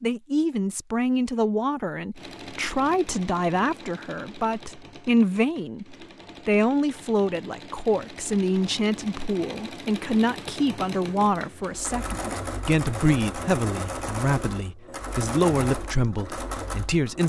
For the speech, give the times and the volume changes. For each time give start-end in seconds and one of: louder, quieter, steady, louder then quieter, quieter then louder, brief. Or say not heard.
0.0-17.2 steady.